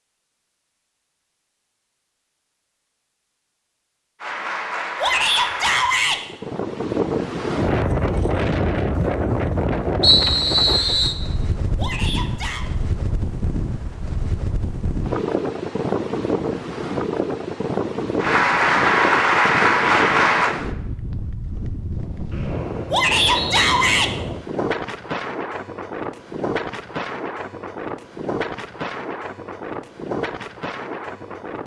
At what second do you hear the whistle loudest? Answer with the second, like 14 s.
10 s.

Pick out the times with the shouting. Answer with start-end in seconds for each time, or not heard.
5.0-6.2, 11.8-12.7, 22.9-24.1.